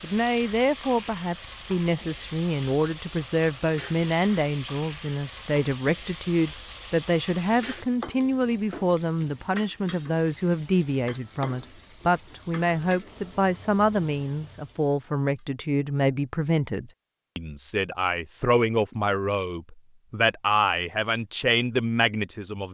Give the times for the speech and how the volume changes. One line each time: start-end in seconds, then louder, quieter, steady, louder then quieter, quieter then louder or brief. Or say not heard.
0.0-22.6 steady.